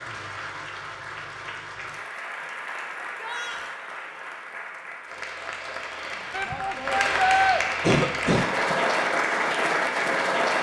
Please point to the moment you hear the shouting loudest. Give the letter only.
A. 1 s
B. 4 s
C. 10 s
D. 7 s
D.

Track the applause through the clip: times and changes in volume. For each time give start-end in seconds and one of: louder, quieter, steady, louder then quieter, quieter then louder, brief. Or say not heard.
0.0-10.5 louder.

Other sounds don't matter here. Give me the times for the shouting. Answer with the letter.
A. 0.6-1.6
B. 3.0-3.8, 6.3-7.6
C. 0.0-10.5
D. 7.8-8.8
B.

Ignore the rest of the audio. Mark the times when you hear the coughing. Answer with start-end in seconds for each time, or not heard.
7.8-8.8.